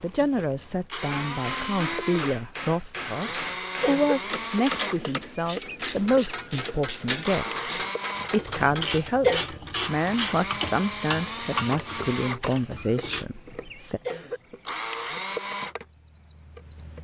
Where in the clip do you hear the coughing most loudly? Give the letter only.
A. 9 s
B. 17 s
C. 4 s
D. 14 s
A.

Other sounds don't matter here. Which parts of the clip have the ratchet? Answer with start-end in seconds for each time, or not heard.
4.1-13.2.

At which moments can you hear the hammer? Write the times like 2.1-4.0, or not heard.
1.1-8.8.